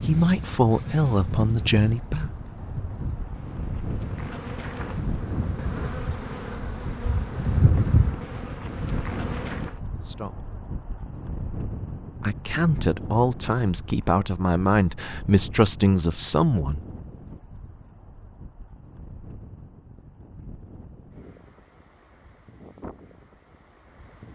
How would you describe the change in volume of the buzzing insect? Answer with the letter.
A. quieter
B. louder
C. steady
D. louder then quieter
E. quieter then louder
B.